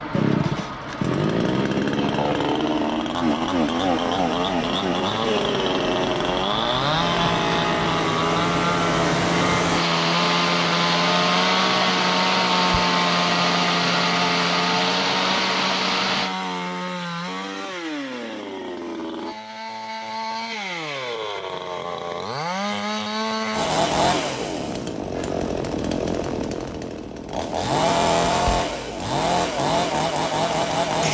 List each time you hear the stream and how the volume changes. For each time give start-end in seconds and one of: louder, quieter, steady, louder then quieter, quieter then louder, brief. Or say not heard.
0.0-16.3 louder.